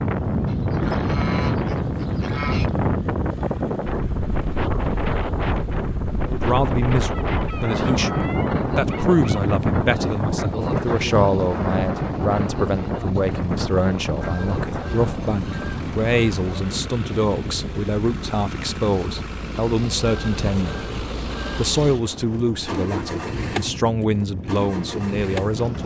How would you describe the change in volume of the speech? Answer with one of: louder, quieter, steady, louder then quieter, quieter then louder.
steady.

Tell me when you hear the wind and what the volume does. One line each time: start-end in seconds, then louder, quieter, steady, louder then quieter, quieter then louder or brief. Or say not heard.
0.0-25.8 quieter.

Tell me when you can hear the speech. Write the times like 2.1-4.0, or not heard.
6.2-25.8.